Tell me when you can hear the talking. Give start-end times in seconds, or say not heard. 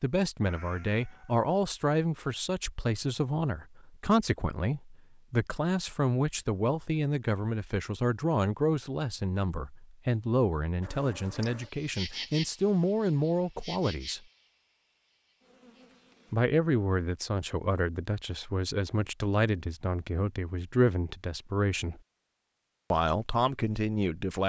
0.0-14.2, 16.3-22.0, 22.9-24.4.